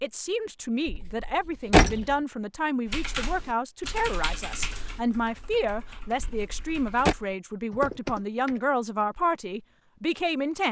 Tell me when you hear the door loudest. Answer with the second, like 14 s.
2 s.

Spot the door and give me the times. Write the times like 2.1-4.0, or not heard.
0.8-2.1, 6.2-7.2.